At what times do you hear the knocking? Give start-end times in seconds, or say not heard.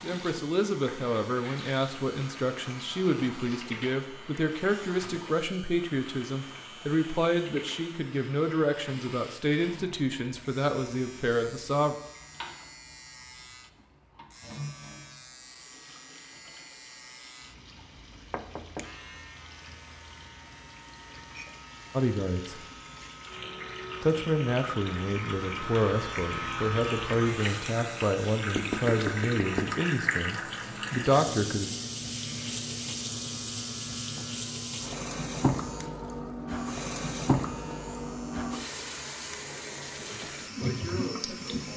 18.1-19.0, 28.6-29.7.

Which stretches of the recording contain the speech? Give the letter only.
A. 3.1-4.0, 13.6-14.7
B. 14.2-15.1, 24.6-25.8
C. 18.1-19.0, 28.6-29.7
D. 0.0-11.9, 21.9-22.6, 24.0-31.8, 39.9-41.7
D.